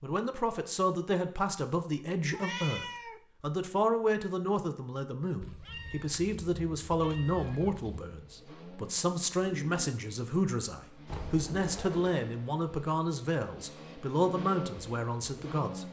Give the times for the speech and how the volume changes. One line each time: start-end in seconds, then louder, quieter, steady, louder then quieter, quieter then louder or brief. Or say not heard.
0.0-15.8 steady.